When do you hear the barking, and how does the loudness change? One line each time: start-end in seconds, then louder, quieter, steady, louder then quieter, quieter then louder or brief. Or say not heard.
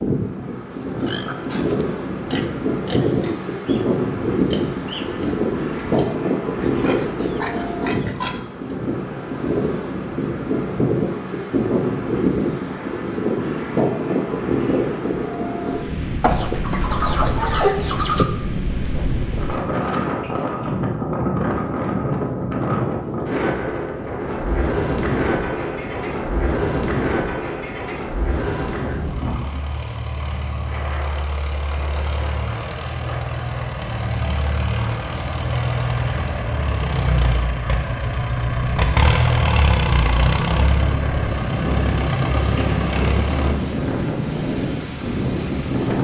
not heard.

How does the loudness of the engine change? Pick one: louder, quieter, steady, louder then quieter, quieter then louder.
louder.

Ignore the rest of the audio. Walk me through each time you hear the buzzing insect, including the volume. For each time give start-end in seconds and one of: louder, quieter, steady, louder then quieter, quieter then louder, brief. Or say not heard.
not heard.